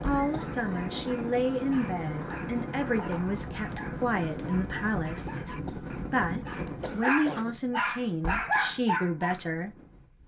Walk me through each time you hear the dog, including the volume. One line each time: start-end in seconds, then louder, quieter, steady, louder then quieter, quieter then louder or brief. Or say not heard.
0.1-9.4 louder.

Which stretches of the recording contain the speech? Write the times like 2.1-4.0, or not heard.
0.0-9.7.